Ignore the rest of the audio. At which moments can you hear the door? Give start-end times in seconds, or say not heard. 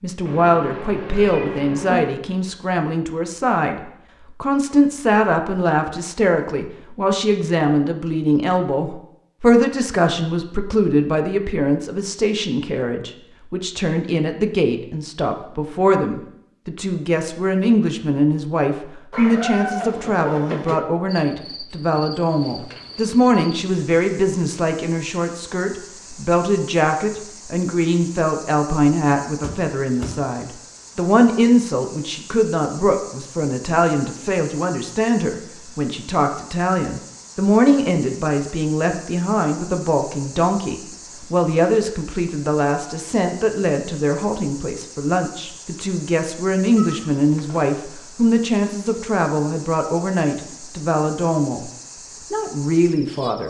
29.4-30.2.